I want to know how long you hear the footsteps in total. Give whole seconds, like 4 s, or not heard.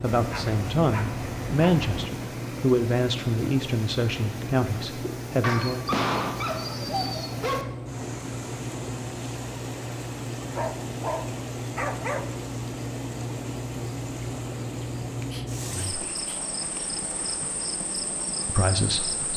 not heard.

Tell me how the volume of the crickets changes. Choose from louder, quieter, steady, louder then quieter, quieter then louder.
steady.